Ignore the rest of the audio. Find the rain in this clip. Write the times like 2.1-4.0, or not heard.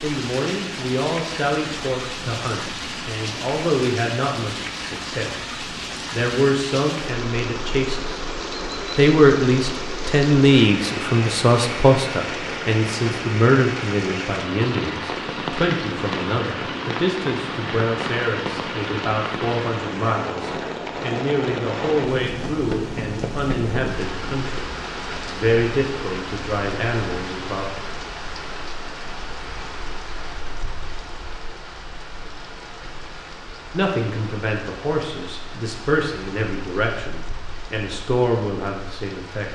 0.0-39.4.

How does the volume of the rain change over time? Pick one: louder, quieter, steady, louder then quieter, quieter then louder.
quieter.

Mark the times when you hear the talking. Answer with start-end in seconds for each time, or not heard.
0.0-5.5, 6.1-8.2, 8.9-24.6, 25.2-27.6, 33.7-39.4.